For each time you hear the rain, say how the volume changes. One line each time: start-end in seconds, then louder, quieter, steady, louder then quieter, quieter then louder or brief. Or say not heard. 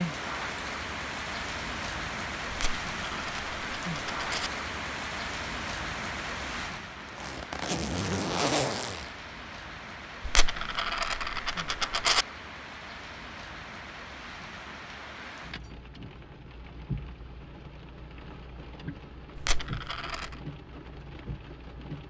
0.0-22.0 quieter.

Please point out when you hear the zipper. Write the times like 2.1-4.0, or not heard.
6.8-9.2.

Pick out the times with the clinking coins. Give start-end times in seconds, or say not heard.
2.5-4.5, 10.2-12.2, 19.4-20.4.